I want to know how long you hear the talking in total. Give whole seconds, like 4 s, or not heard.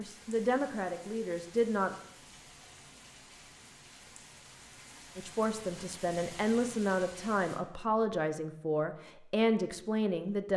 7 s.